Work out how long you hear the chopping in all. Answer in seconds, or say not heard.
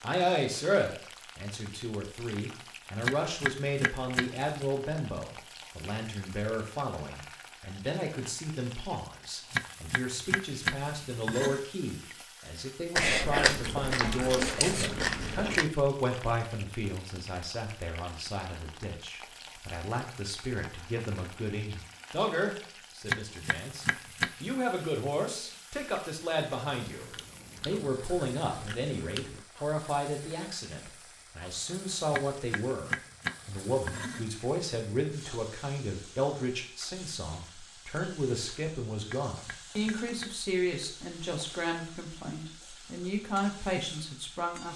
9 s.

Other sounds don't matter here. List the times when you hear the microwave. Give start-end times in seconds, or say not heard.
not heard.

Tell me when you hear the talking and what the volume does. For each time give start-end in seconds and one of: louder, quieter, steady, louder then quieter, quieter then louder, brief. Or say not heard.
0.0-44.7 steady.